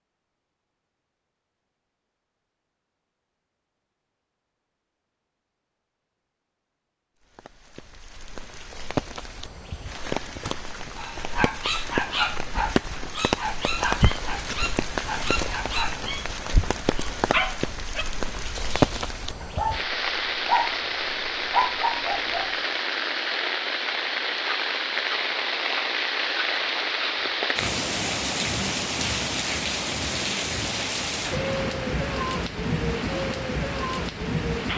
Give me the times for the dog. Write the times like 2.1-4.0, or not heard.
10.9-22.6.